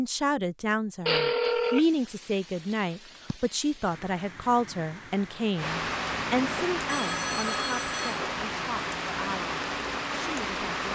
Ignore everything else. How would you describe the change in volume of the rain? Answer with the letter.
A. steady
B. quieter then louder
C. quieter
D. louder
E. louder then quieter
D.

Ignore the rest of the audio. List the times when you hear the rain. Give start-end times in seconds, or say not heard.
1.4-10.9.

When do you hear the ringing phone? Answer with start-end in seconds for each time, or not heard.
1.1-1.9, 6.8-8.2.